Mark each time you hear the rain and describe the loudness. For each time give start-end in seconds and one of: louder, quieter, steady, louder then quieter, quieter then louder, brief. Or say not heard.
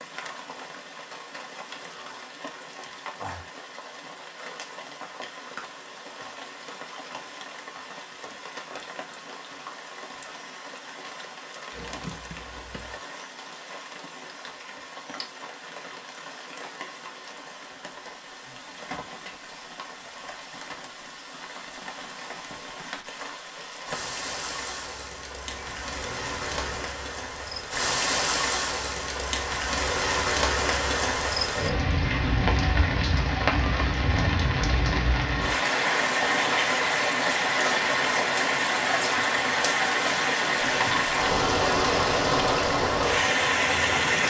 0.0-44.2 louder.